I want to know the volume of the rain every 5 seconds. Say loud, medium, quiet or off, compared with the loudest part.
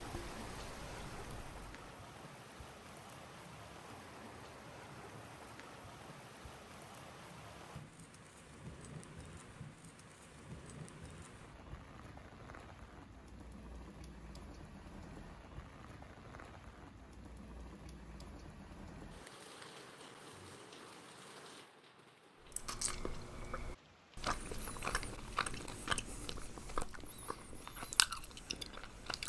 loud, loud, loud, loud, medium, medium.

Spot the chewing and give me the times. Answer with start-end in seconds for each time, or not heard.
0.0-1.8, 22.4-29.2.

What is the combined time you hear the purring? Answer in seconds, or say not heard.
not heard.